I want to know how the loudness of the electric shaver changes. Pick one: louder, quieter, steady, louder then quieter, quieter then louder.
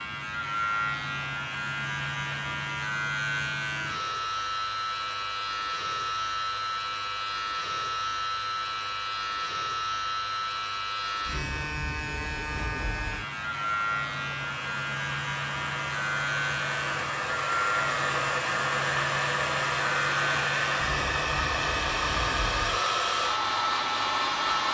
steady.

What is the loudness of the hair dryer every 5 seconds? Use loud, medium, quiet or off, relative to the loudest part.
quiet, quiet, quiet, loud, loud.